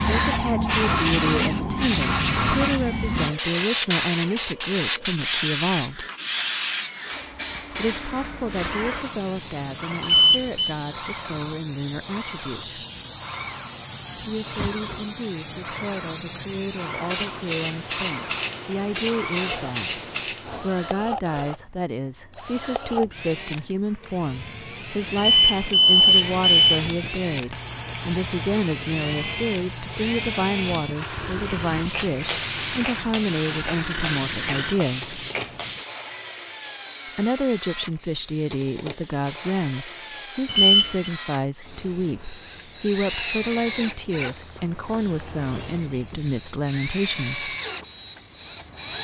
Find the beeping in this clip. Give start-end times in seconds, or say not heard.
10.0-10.8, 25.1-26.6, 40.5-41.1.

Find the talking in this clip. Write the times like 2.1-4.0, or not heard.
0.1-6.0, 7.7-12.8, 14.2-35.2, 37.1-47.5.